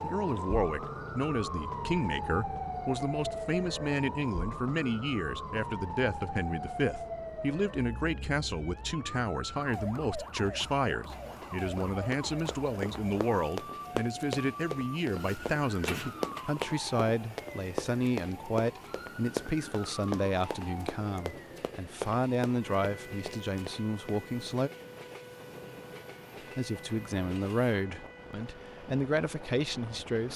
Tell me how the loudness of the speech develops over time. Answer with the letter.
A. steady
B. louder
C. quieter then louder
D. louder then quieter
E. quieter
A.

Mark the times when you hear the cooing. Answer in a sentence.
You can hear the cooing from 15.1 to 16.6 s.